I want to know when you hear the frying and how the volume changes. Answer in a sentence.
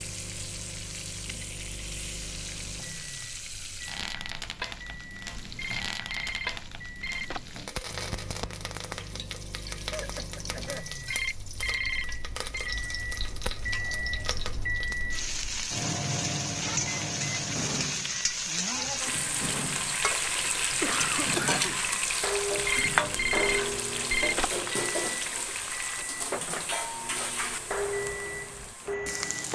You can hear the frying from 0.0 to 29.5 s, getting louder then quieter.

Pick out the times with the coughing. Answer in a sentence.
The coughing can be heard from 9.8 to 10.9 s and from 20.4 to 21.8 s.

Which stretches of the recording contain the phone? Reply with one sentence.
You can hear the phone from 5.5 to 7.5 s, from 11.1 to 12.8 s and from 22.6 to 24.6 s.